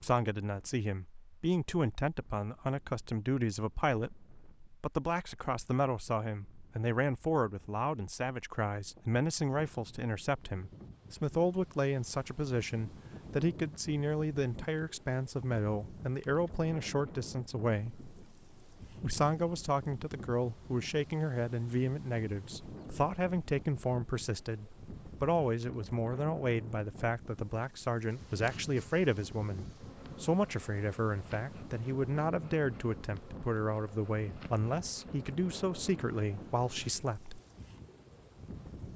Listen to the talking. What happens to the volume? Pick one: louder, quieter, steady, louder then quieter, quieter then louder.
steady.